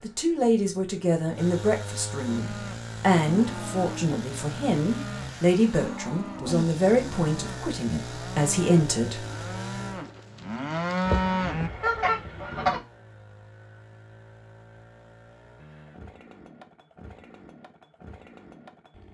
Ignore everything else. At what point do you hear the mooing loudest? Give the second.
11 s.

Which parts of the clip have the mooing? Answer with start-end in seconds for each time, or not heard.
2.2-11.7.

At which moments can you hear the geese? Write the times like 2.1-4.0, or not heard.
11.1-12.8.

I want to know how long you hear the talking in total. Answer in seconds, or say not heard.
9 s.